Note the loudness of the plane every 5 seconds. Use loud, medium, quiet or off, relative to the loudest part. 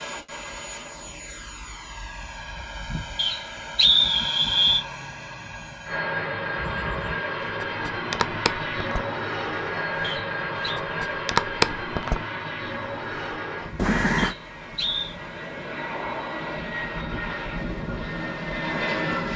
medium, loud, loud, loud.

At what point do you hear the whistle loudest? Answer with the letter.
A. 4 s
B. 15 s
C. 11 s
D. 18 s
A.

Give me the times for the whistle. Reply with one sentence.
The whistle can be heard from 3.1 to 4.8 s, from 10.0 to 10.8 s and from 14.2 to 15.2 s.